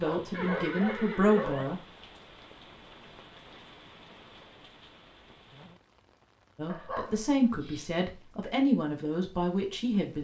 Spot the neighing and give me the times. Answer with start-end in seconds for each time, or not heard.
0.3-1.6.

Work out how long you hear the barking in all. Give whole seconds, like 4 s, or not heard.
3 s.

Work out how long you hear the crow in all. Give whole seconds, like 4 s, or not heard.
not heard.